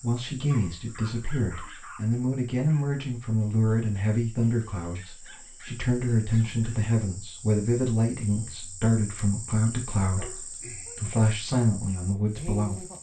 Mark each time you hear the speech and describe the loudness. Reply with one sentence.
You can hear the speech from 0.0 to 12.8 s, at a steady volume.